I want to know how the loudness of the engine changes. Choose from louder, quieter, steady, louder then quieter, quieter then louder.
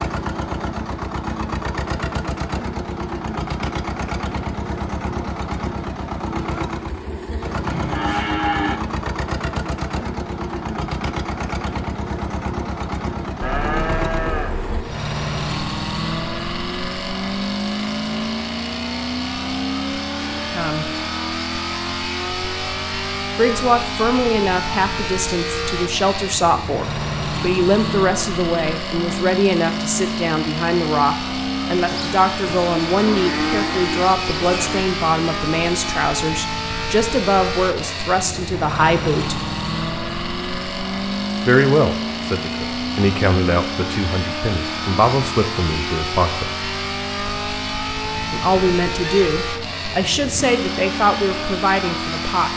steady.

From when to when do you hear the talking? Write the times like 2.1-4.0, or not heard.
20.3-20.9, 23.4-39.5, 41.5-46.5, 48.3-52.5.